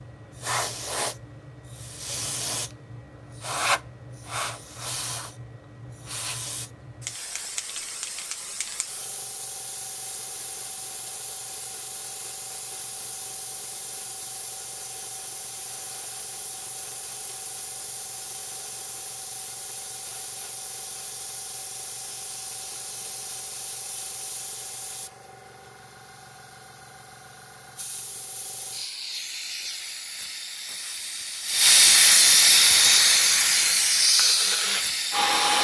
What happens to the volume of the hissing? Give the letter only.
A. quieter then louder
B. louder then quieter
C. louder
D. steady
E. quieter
A.